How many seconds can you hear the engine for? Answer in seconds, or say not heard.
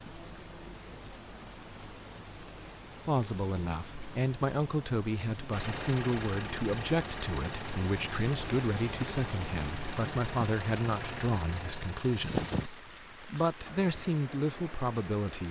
7 s.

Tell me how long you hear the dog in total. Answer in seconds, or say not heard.
not heard.